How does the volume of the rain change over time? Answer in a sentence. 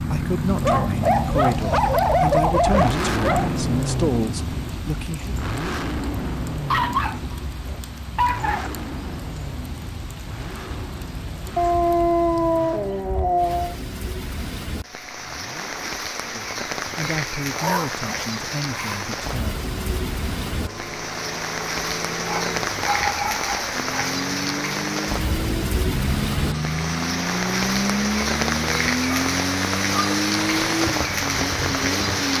The loudness of the rain goes up.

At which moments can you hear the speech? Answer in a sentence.
You can hear the speech from 0.0 to 5.3 s and from 16.3 to 19.6 s.